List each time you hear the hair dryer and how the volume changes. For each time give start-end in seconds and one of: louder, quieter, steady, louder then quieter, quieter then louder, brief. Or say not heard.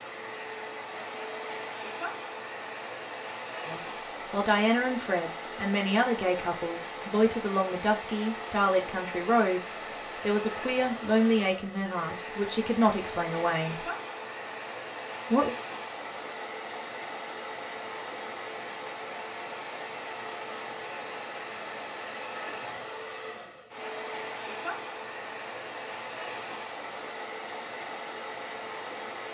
0.0-29.2 steady.